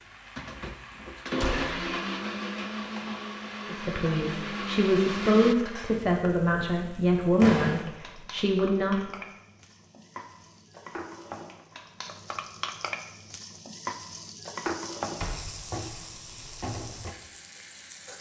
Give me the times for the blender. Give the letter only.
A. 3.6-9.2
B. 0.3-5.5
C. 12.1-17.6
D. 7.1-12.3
B.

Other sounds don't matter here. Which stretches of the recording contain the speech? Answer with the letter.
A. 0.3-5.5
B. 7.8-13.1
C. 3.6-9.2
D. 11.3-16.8
C.